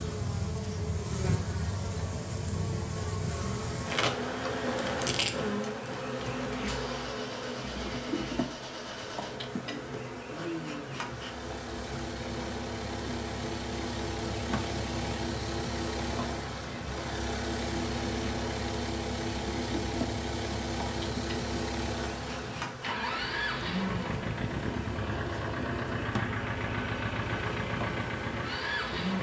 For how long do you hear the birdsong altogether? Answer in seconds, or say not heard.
not heard.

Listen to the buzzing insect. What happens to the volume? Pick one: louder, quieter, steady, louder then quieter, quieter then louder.
quieter.